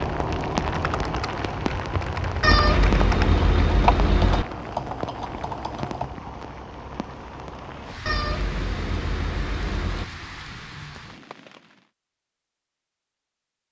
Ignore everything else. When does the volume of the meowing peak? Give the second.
3 s.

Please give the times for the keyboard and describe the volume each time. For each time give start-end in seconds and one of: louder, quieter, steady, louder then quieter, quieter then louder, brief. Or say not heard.
0.6-6.2 louder then quieter.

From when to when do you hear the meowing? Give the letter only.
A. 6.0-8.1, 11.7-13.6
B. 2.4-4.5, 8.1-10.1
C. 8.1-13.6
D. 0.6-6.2
B.